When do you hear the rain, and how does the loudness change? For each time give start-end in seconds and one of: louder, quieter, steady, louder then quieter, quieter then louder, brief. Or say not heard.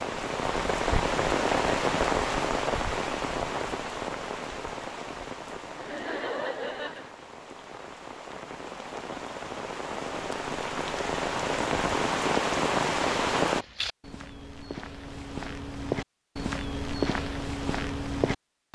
0.0-13.7 quieter then louder.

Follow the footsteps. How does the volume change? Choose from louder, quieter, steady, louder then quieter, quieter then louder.
louder.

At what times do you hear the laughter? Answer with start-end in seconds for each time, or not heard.
5.8-7.1.